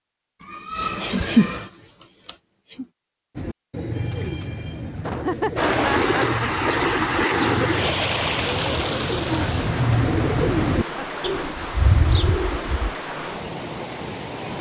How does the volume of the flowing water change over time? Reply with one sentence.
The loudness of the flowing water goes down.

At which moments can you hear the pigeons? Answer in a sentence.
You can hear the pigeons from 3.4 to 12.9 s.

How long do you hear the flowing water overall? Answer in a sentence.
You can hear the flowing water for 9 seconds altogether.